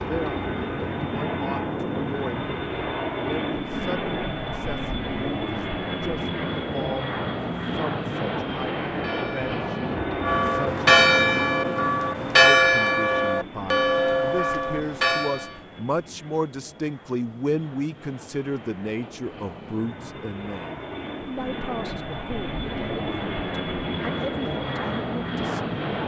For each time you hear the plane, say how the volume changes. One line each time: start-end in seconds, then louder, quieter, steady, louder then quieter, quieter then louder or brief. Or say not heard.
0.0-26.0 quieter then louder.